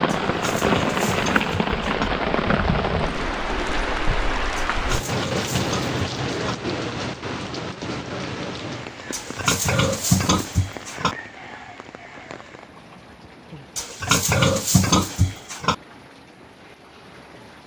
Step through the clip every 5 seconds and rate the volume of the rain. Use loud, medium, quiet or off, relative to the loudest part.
loud, medium, quiet, quiet.